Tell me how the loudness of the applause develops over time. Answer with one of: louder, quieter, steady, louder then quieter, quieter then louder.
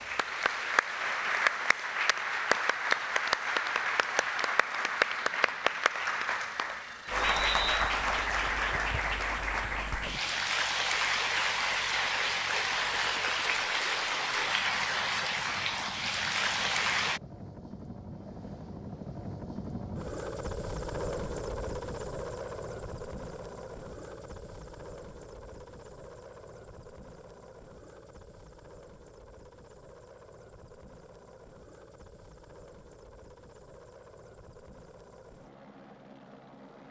steady.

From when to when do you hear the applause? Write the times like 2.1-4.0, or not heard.
0.0-17.2.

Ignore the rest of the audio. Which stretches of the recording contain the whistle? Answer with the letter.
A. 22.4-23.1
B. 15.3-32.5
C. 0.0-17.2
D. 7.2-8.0
D.